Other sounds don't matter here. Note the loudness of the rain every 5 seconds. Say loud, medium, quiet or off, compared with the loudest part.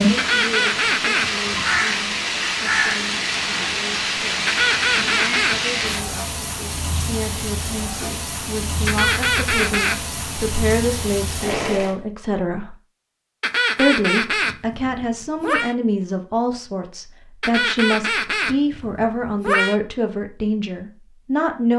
loud, medium, medium, off, off.